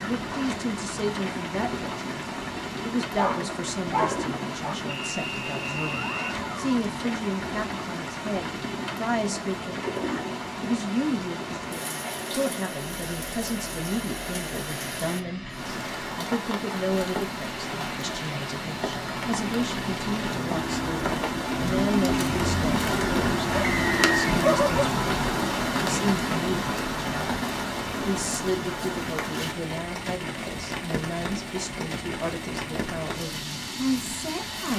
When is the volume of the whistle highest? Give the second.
24 s.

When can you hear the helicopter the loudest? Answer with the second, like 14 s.
22 s.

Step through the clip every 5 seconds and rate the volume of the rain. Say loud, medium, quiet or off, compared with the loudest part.
medium, medium, medium, medium, loud, loud, medium.